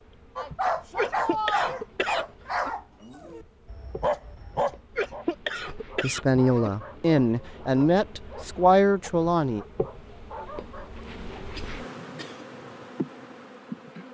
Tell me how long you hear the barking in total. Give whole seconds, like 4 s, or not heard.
11 s.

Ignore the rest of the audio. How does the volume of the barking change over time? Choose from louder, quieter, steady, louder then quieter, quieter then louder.
quieter.